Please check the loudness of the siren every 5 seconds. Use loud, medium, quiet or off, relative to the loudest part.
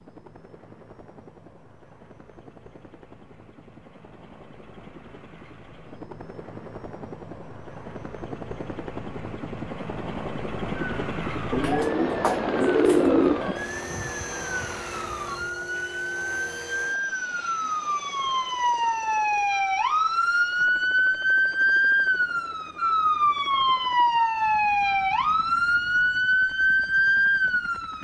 off, off, quiet, medium, loud, loud.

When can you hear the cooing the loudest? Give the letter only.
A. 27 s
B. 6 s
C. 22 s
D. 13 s
D.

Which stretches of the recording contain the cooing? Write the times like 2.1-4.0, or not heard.
11.5-13.6.